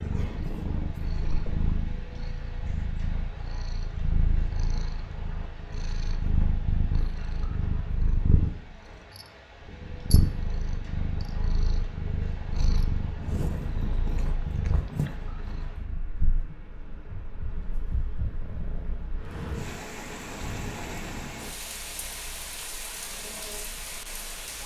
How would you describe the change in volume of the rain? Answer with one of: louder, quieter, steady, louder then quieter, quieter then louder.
louder.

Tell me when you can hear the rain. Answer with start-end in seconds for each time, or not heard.
0.0-24.6.